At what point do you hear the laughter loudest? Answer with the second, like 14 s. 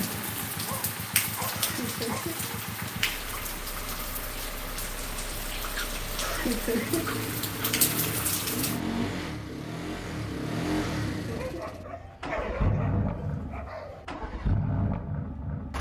7 s.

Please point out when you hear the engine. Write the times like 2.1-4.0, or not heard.
0.0-15.7.